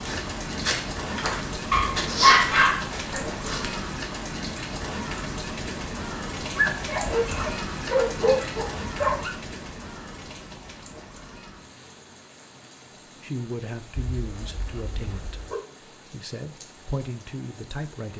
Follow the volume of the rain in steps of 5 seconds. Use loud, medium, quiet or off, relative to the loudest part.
loud, loud, quiet, quiet.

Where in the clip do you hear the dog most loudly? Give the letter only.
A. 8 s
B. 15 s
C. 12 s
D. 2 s
D.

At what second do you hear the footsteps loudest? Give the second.
2 s.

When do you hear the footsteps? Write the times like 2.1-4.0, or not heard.
0.0-3.8.